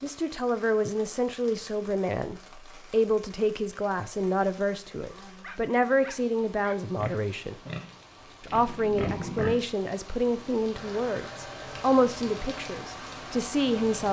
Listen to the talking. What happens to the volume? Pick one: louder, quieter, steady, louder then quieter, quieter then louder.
steady.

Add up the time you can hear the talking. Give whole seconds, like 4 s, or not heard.
13 s.